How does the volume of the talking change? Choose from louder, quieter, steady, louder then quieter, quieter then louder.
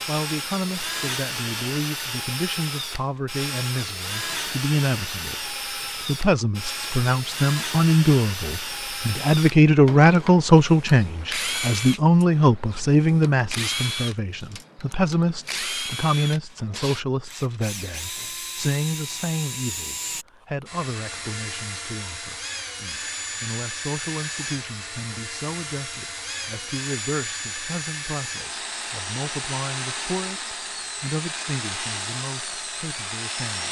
louder then quieter.